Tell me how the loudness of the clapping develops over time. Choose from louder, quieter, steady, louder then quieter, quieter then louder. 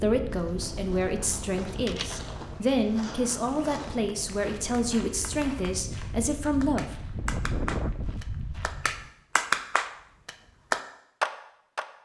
louder.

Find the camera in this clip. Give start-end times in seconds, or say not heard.
0.6-2.6.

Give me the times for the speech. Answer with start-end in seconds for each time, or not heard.
0.0-7.0.